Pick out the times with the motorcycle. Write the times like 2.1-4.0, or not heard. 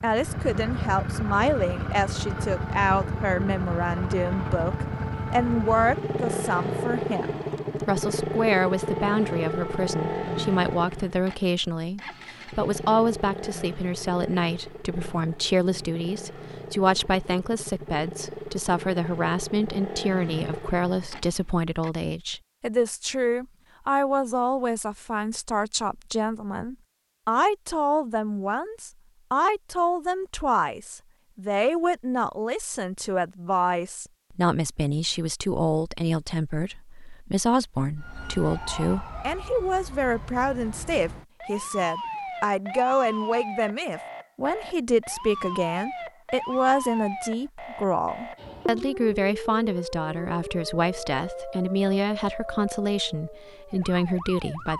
0.0-21.9.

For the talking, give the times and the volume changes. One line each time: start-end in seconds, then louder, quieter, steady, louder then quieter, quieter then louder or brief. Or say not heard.
0.0-54.7 steady.